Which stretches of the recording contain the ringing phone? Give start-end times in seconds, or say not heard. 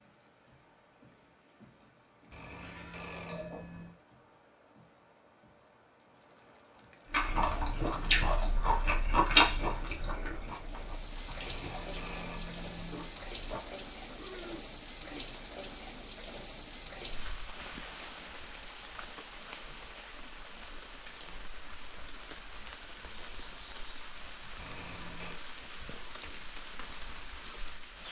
2.3-4.0, 11.3-13.1, 24.6-25.4.